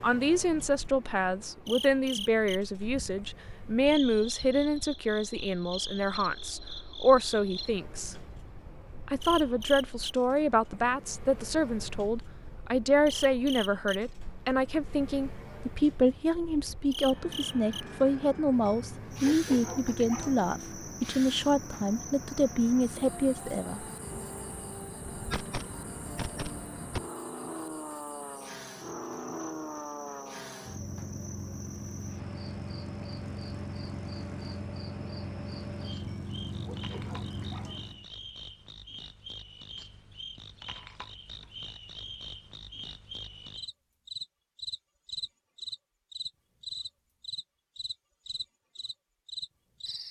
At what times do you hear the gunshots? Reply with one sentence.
The gunshots can be heard from 25.1 to 27.0 s.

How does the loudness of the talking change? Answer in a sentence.
The loudness of the talking stays about the same.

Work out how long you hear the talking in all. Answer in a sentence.
The talking can be heard for 23 seconds in total.